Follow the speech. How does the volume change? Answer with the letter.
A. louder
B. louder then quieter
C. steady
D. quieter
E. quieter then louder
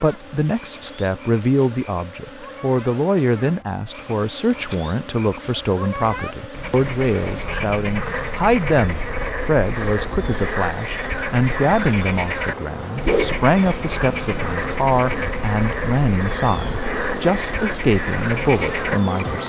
C.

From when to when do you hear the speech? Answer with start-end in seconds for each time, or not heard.
0.0-19.4.